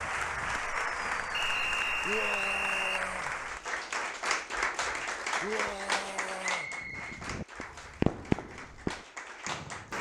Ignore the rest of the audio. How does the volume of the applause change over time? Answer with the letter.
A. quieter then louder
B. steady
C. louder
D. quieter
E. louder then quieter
D.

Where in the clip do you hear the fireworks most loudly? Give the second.
8 s.